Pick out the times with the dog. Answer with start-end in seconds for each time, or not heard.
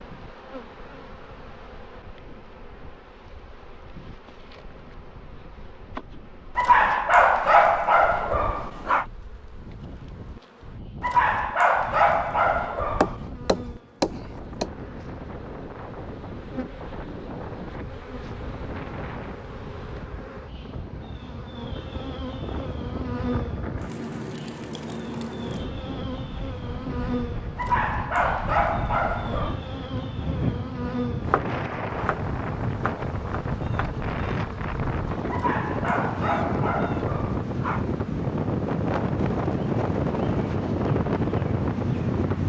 6.5-9.1, 11.0-13.2, 27.6-29.6, 35.3-37.9.